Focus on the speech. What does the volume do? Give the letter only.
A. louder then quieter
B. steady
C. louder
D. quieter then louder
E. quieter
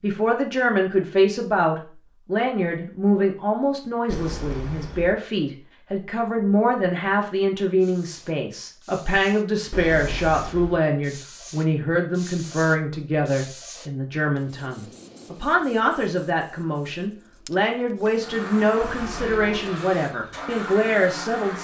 B.